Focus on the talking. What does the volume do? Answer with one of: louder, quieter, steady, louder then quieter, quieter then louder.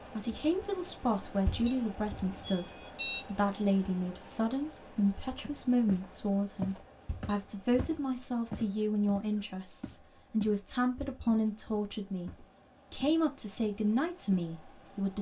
steady.